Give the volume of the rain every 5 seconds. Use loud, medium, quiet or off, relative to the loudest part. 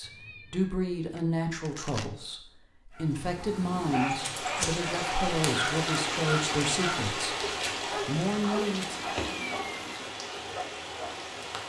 loud, loud, medium.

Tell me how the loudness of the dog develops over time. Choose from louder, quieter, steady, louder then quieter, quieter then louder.
quieter.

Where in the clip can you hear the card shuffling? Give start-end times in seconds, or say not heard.
1.1-2.1.